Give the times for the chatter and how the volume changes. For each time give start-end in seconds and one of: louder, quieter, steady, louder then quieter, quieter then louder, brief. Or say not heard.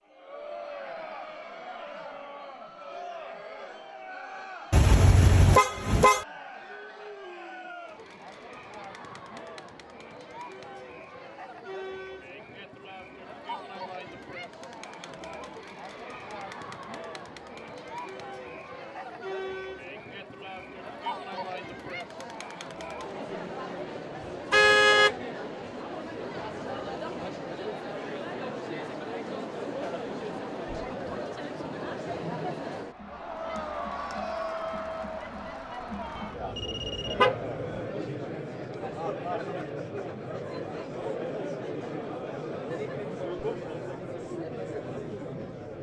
0.1-45.7 louder.